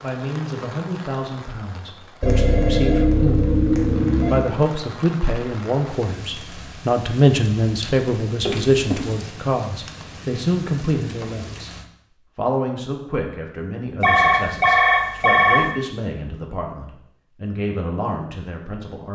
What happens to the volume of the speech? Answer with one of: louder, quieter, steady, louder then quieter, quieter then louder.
louder then quieter.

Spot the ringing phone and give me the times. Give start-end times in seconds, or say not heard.
2.2-4.4, 8.4-9.2, 14.0-15.7.